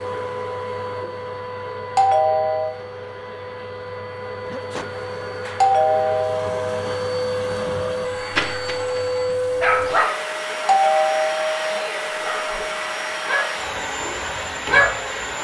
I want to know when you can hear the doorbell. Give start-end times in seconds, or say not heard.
1.9-2.8, 5.6-6.8, 10.7-11.9.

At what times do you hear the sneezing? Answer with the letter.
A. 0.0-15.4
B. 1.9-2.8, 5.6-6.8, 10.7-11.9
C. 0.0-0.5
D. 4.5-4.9
D.